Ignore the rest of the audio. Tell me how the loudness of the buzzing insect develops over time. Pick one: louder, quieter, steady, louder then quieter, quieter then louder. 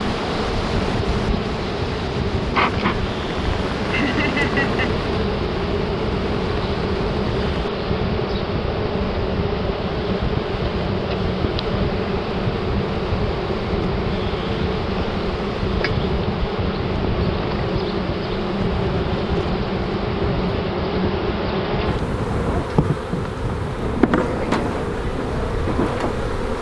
steady.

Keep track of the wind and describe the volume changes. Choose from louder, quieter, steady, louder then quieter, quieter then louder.
steady.